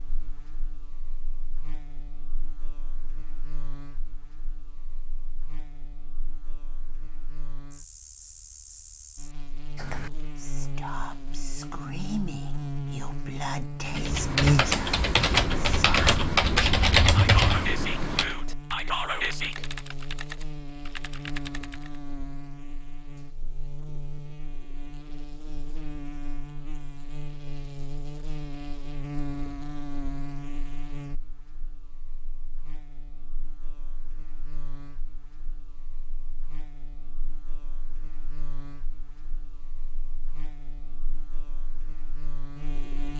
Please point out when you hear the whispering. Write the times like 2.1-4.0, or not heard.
9.8-19.6.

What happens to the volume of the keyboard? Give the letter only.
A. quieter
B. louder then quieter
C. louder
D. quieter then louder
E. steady
A.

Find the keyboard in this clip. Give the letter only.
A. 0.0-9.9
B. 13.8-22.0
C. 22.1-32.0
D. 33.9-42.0
B.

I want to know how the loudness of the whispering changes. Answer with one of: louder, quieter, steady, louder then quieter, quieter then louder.
louder.